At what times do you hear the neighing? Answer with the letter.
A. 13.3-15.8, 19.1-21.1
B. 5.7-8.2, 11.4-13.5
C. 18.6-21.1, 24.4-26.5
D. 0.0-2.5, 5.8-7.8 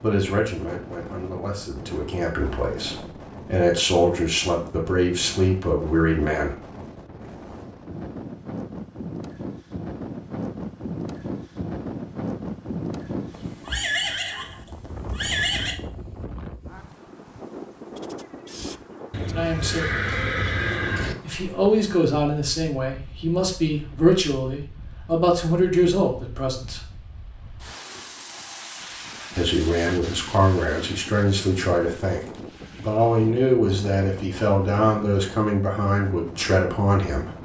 A.